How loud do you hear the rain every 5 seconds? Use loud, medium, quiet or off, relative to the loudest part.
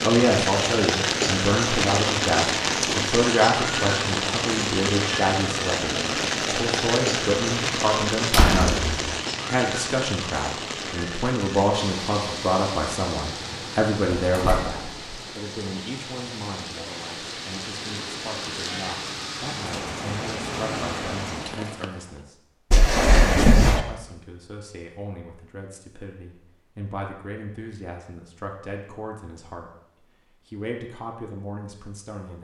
loud, loud, medium, medium, medium, off, off.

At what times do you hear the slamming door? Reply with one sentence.
The slamming door can be heard from 8.3 to 9.2 s, from 14.1 to 15.1 s and from 22.7 to 23.8 s.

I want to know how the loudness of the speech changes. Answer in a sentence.
The loudness of the speech goes down.